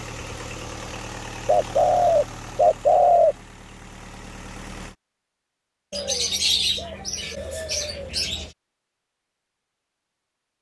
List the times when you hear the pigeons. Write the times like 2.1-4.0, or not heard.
1.4-3.4, 5.9-8.5.